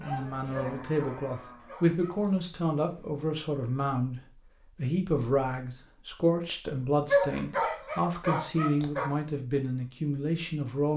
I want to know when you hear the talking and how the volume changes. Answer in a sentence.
The talking can be heard from 0.0 to 10.9 s, at a steady volume.